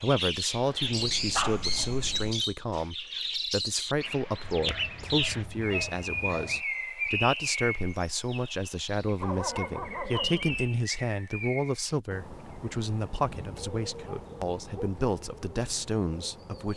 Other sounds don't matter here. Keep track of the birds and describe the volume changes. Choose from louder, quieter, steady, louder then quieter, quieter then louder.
quieter.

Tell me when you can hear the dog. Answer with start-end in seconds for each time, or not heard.
0.8-2.4, 4.4-6.6, 9.2-10.7, 13.2-15.1.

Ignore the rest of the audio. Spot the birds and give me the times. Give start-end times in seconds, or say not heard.
0.0-16.7.